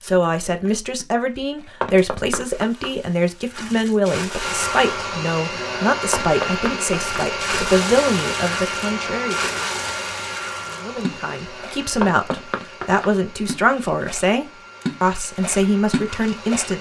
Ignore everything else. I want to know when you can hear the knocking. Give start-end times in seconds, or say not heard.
1.8-3.0, 6.1-7.2, 12.0-13.2.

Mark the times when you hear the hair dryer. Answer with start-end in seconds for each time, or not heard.
4.4-16.7.